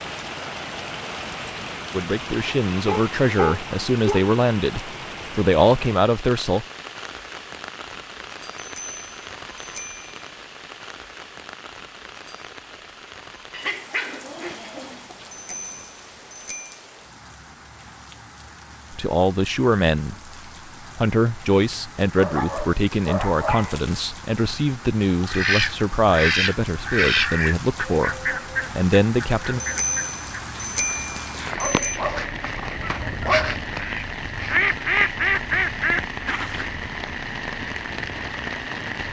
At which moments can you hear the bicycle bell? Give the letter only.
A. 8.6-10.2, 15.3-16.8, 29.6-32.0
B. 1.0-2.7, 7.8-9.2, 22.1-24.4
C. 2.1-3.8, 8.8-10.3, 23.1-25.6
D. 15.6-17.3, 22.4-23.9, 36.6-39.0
A.